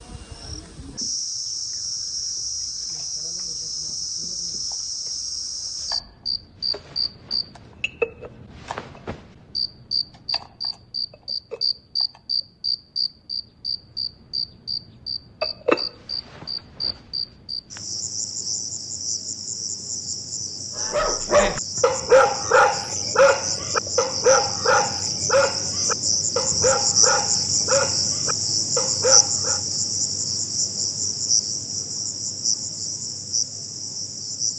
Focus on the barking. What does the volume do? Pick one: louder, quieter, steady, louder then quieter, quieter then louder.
quieter.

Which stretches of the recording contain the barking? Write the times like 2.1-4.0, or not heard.
20.9-29.6.